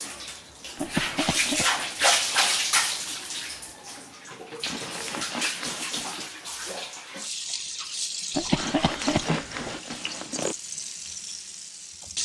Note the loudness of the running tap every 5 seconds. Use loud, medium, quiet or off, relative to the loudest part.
loud, medium, medium.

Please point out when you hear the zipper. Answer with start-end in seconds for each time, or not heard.
0.8-2.0, 4.6-6.2, 8.6-10.6.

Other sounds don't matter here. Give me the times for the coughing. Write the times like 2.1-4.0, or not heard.
0.8-1.6, 8.3-9.8.